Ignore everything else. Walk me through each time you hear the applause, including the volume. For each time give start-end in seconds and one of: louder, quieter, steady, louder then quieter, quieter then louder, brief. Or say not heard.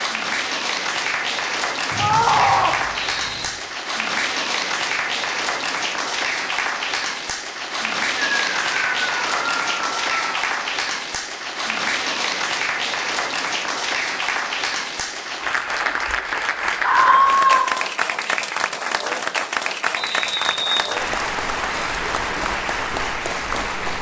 0.0-23.9 steady.